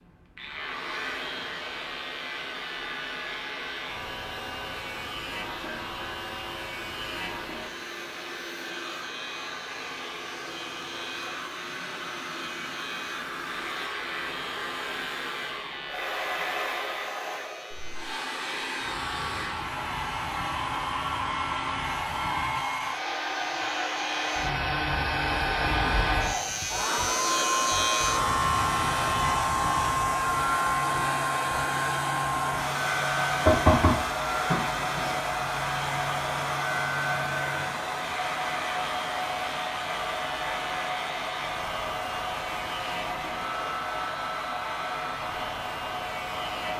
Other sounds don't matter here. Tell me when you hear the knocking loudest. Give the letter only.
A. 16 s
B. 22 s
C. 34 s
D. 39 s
C.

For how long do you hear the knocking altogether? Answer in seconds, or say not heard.
2 s.